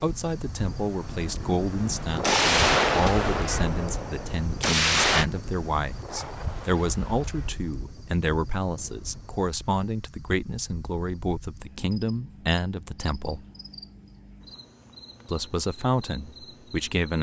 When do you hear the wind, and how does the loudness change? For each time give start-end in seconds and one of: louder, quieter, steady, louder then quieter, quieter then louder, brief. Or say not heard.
0.0-9.4 louder then quieter.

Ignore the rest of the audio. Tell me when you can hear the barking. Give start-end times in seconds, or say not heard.
not heard.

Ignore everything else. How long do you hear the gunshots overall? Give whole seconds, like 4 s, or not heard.
3 s.